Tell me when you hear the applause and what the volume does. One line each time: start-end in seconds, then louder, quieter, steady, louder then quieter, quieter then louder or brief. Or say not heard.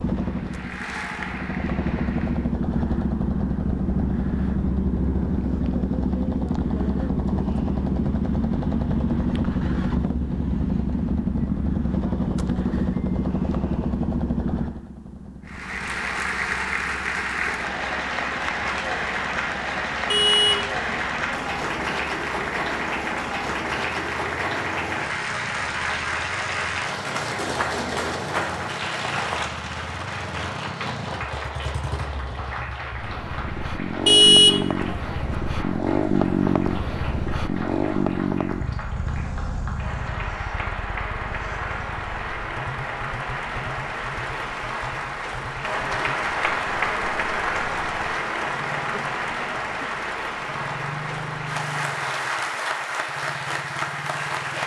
0.0-2.5 brief
15.4-54.6 quieter then louder.